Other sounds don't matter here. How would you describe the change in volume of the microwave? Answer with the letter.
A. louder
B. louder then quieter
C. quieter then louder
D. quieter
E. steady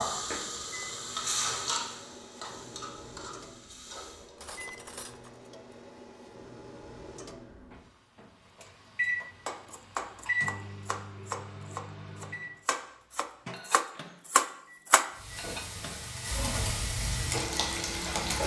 B.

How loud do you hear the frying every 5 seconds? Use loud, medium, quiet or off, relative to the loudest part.
loud, off, off, loud.